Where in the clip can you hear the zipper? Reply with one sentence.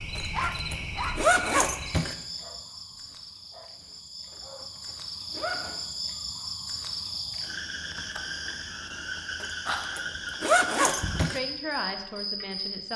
The zipper can be heard from 0.1 to 2.1 s, from 4.3 to 5.8 s and from 9.4 to 11.4 s.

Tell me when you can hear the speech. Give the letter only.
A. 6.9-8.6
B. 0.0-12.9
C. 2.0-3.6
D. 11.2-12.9
D.